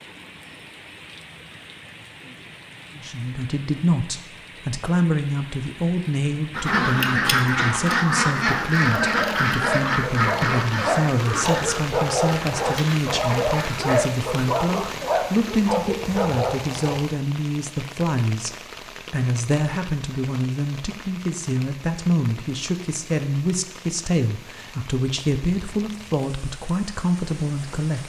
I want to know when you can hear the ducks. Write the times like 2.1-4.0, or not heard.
6.5-14.0.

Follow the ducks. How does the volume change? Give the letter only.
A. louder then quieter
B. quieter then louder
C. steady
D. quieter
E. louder
D.